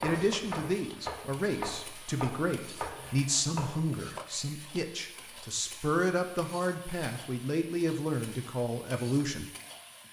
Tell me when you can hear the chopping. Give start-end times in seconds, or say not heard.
0.0-4.0.